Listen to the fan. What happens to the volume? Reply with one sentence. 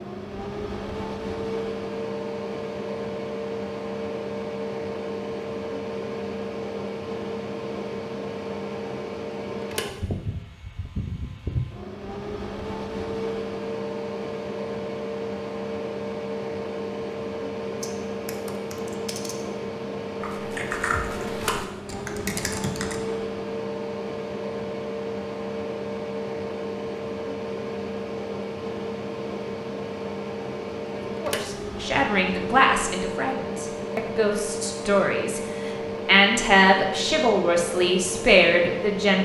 The loudness of the fan stays about the same.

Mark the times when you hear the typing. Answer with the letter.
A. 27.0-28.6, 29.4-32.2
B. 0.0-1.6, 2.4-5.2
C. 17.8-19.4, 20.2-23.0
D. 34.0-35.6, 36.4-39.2
C.